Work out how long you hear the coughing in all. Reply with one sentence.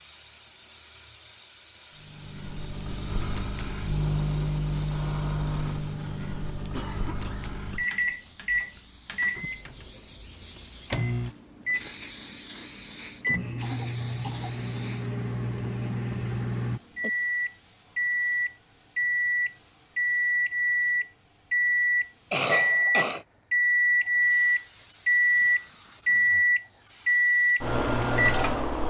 The coughing can be heard for 3 seconds in total.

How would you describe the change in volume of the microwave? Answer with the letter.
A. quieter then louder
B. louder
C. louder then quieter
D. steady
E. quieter
B.